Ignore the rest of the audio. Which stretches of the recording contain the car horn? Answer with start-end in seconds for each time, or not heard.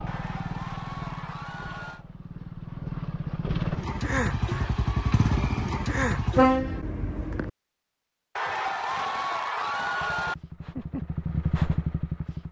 6.3-7.5.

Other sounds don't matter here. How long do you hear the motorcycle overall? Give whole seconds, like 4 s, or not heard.
9 s.